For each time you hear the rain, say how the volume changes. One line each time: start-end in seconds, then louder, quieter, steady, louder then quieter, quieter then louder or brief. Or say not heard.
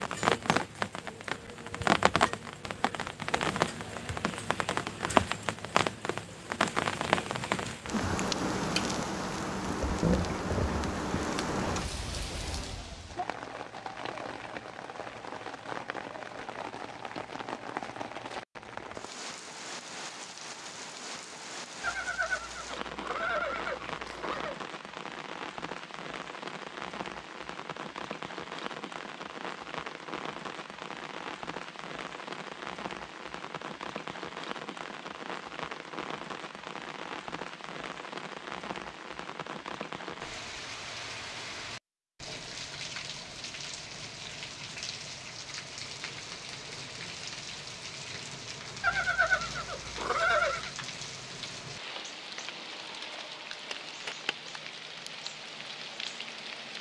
0.0-56.7 quieter.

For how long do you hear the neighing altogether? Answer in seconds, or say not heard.
5 s.